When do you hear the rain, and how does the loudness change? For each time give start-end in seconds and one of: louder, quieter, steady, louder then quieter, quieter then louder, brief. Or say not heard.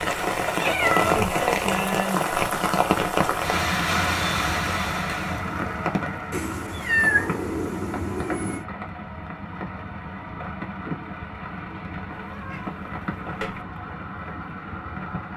0.0-15.3 quieter.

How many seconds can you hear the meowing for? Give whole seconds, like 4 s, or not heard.
5 s.